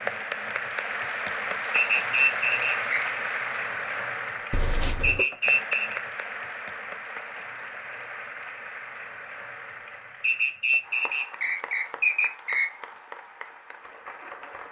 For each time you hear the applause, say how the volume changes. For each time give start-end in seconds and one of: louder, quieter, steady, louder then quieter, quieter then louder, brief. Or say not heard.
0.0-14.6 quieter.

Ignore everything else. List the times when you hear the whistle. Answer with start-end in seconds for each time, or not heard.
1.7-3.0, 5.0-6.0, 10.2-12.8.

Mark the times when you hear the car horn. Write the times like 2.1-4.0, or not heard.
4.5-5.2.